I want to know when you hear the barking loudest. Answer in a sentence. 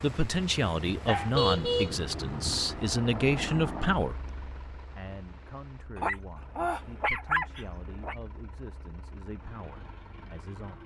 The volume of the barking peaks at 7 seconds.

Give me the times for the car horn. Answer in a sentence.
You can hear the car horn from 1.3 to 2.6 s.